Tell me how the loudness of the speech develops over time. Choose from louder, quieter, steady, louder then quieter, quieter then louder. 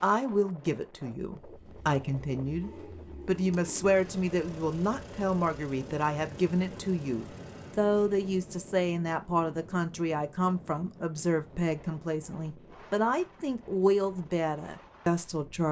steady.